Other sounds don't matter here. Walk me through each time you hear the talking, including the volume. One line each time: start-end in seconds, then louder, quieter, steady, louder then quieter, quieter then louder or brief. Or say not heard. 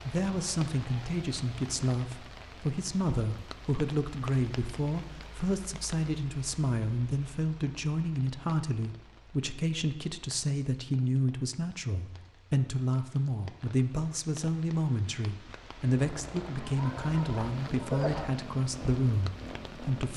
0.0-20.1 steady.